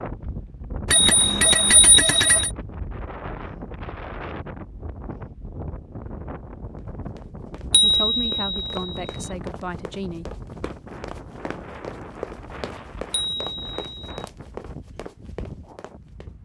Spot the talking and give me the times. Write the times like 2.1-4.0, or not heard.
7.8-10.3.